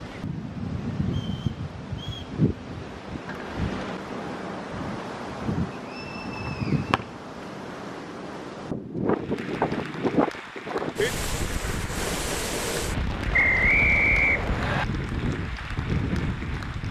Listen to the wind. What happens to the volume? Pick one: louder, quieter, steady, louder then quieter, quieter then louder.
steady.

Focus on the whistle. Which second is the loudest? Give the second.
14 s.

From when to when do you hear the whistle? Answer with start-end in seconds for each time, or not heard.
1.1-2.4, 5.8-6.9, 13.3-14.8.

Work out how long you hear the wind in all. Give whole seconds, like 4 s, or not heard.
17 s.